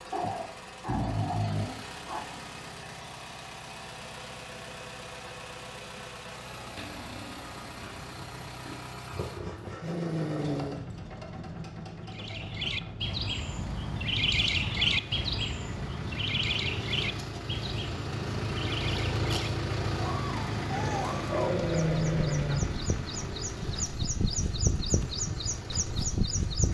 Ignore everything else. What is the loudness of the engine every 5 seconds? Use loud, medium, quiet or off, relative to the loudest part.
medium, medium, medium, loud, loud, medium.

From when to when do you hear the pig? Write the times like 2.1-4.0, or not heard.
6.8-8.8.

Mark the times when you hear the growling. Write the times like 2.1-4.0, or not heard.
0.1-2.2, 9.1-10.8, 20.7-22.6.